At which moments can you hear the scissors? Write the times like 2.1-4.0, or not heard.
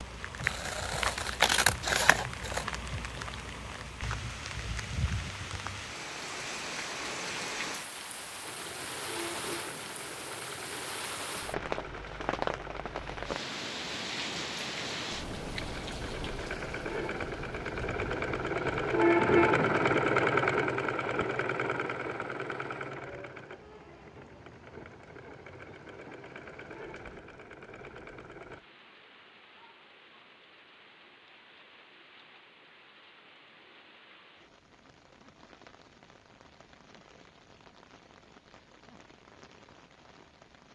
0.4-2.6.